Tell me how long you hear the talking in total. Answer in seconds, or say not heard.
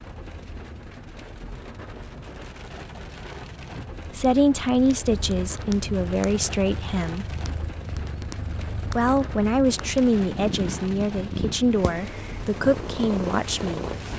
8 s.